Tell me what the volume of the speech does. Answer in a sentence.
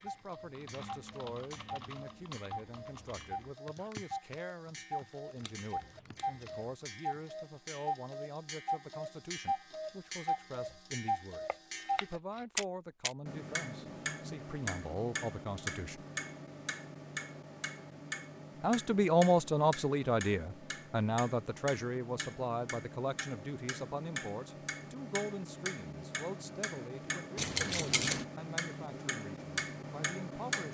The loudness of the speech goes up, then down.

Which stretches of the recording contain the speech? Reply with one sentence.
The speech can be heard from 0.0 to 16.1 s and from 18.6 to 30.6 s.